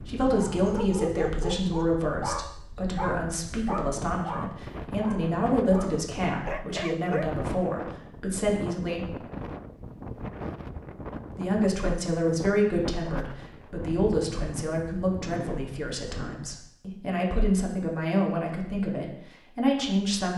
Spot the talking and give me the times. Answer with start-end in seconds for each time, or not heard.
0.1-9.1, 11.3-20.3.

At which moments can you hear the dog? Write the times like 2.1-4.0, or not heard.
0.2-7.5.